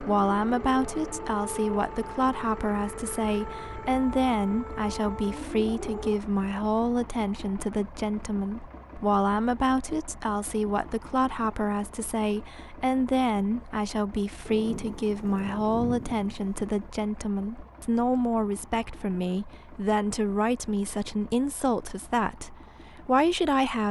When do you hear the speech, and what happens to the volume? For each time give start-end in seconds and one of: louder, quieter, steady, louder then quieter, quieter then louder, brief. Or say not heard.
0.0-23.8 steady.